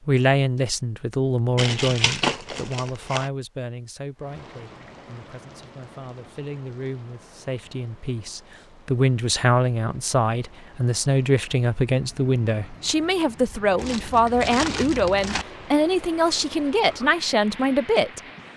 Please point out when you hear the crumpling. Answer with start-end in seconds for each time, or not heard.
1.6-3.3, 13.8-15.4.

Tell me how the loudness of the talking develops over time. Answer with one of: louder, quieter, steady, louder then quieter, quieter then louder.
quieter then louder.